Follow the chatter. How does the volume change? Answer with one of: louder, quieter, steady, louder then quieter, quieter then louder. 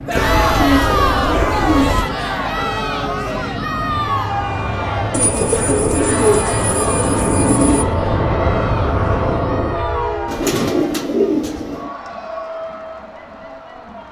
quieter.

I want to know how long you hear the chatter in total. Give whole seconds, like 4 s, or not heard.
14 s.